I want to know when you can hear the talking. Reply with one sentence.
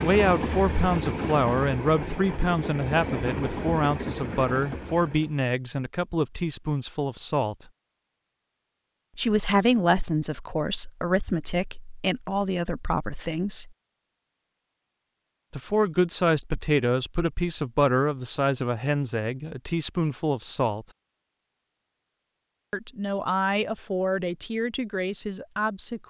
The talking can be heard from 0.0 to 7.5 s, from 9.2 to 13.7 s, from 15.5 to 20.9 s and from 22.7 to 26.0 s.